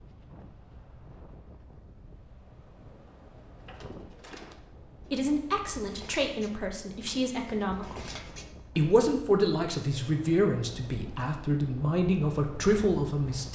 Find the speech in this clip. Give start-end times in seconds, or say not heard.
5.0-8.1, 8.8-13.5.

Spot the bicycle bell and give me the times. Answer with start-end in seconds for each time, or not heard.
not heard.